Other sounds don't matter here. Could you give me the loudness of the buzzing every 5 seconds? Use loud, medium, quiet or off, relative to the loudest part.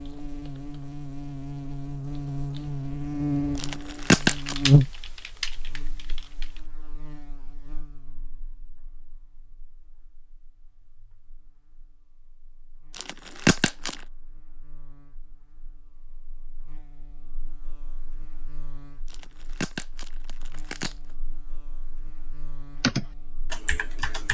loud, quiet, quiet, quiet, quiet.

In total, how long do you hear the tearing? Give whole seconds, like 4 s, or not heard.
4 s.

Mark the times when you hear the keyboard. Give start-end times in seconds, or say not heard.
0.0-6.7, 22.8-24.2.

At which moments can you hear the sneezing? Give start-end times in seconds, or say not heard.
not heard.